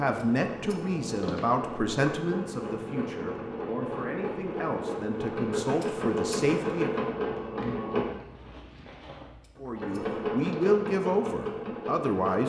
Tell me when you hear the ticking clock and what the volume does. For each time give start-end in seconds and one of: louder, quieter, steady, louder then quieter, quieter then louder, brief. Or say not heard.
not heard.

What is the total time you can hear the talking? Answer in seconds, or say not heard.
10 s.